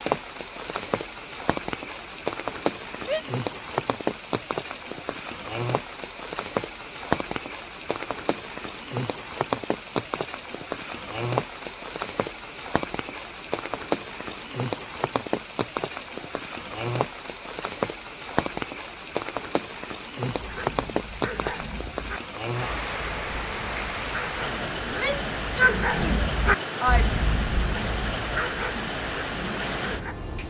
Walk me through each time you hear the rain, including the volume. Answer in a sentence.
You can hear the rain from 0.0 to 30.4 s, at a steady volume.